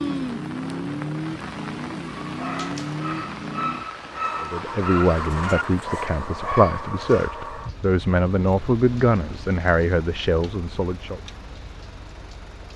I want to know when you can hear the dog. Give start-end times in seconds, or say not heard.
2.0-7.3.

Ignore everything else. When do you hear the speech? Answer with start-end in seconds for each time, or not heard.
4.4-11.2.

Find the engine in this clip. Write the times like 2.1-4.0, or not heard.
0.0-12.7.